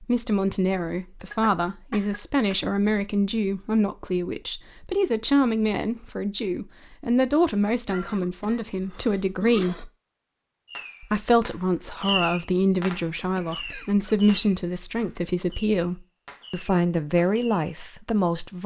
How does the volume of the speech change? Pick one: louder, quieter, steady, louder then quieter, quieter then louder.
steady.